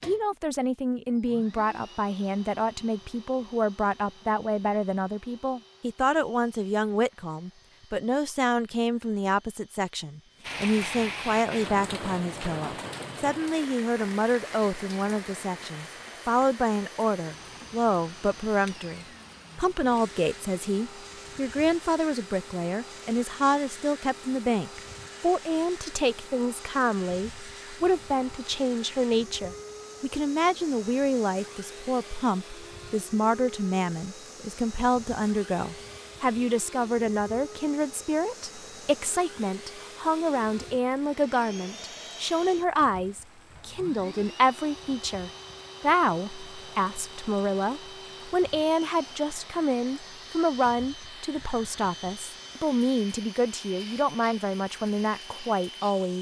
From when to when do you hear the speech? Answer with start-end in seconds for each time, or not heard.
0.0-56.1.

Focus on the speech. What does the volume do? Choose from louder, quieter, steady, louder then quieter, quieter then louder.
steady.